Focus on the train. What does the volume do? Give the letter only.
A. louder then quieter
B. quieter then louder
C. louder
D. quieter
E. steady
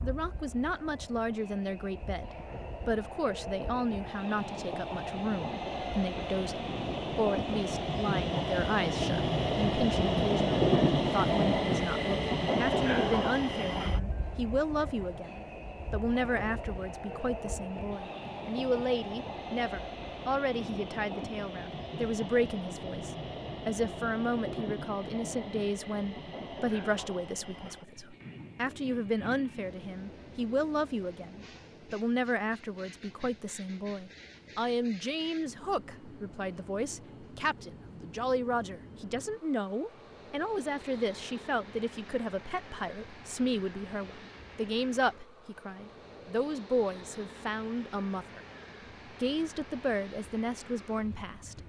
D.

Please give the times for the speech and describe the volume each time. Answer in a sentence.
The speech can be heard from 0.0 to 48.4 s, at a steady volume; and briefly from 49.2 to 51.6 s.